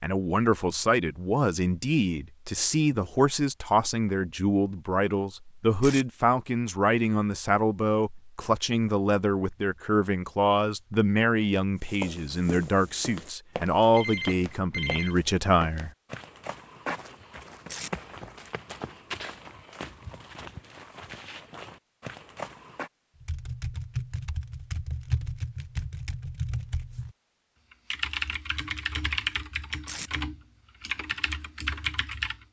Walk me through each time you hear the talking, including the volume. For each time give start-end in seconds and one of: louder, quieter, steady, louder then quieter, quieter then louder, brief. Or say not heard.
0.0-15.9 steady.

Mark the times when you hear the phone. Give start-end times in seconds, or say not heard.
13.9-15.2.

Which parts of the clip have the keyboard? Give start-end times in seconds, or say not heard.
23.2-32.4.